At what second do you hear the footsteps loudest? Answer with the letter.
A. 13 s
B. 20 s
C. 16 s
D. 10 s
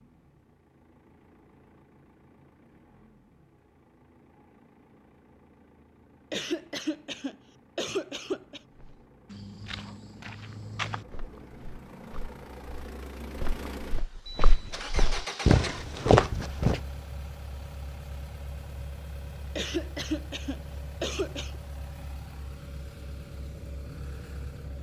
C.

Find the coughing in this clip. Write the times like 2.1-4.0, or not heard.
6.3-8.6, 19.6-21.6.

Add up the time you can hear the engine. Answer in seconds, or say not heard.
25 s.